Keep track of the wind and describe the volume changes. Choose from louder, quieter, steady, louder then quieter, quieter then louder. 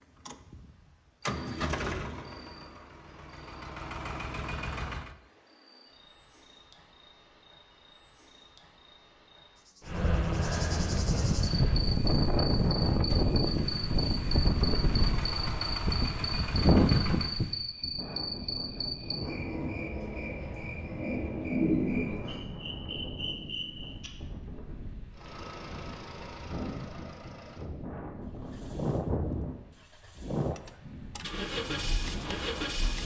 quieter.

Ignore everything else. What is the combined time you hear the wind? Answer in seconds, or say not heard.
23 s.